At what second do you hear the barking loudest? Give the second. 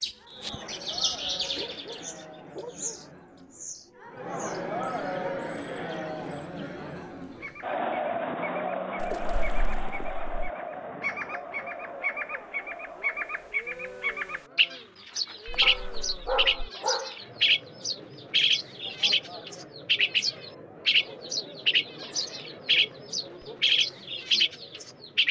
16 s.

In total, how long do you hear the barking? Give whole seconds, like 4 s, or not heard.
3 s.